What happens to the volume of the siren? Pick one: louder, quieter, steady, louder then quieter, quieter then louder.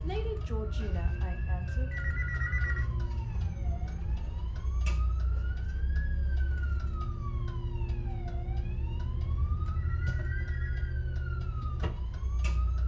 steady.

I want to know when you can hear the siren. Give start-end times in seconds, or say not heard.
0.0-12.8.